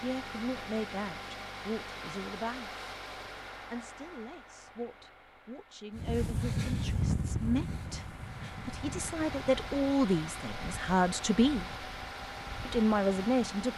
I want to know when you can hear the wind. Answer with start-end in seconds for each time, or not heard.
6.0-13.7.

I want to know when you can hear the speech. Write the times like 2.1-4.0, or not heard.
0.0-2.8, 3.5-11.8, 12.7-13.7.